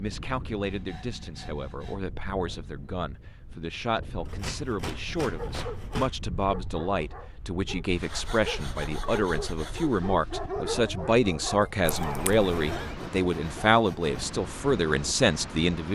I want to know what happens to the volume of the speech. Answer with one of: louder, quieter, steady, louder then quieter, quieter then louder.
louder.